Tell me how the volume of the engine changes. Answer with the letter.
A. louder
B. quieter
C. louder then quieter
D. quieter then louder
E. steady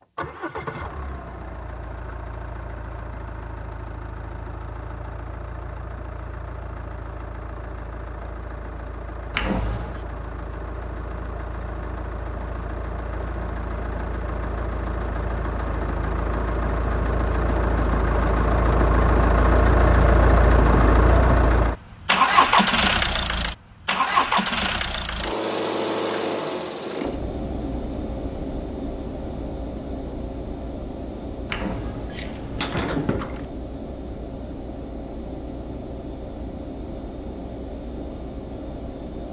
C.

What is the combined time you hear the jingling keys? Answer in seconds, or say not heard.
3 s.